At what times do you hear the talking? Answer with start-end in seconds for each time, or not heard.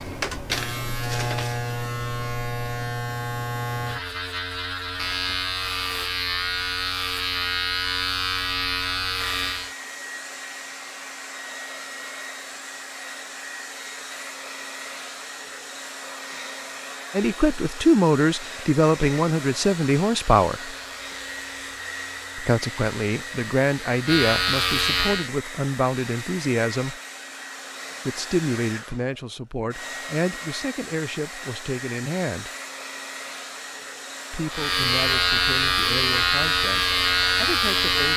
17.1-20.8, 22.4-27.0, 28.1-32.5, 34.3-38.1.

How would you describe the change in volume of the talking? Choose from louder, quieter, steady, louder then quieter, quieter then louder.
quieter.